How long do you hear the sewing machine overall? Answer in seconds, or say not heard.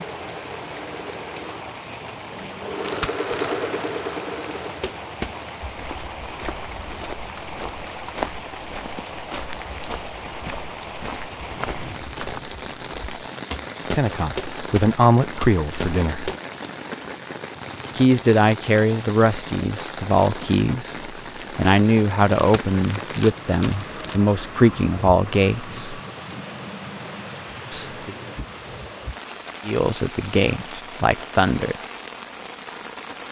5 s.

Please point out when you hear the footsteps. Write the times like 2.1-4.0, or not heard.
4.8-16.4.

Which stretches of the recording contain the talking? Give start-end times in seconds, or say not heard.
13.9-16.3, 17.9-26.0, 27.7-28.1, 29.6-31.8.